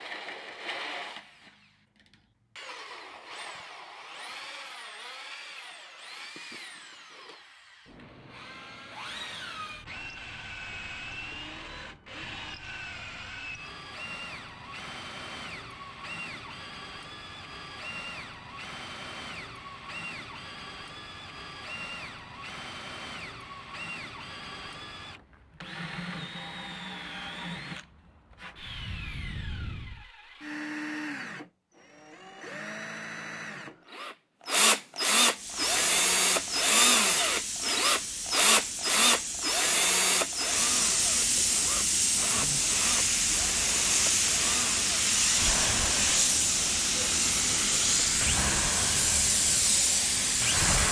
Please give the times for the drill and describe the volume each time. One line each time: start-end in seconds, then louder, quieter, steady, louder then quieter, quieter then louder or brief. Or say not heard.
0.0-50.8 louder then quieter.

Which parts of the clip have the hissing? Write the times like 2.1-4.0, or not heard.
35.3-50.8.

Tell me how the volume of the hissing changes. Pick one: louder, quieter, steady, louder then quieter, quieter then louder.
louder.